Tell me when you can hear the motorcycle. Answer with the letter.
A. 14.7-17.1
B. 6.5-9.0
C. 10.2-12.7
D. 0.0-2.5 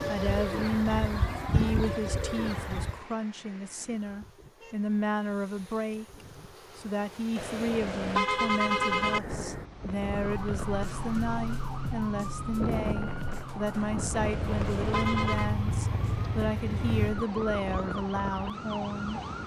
A.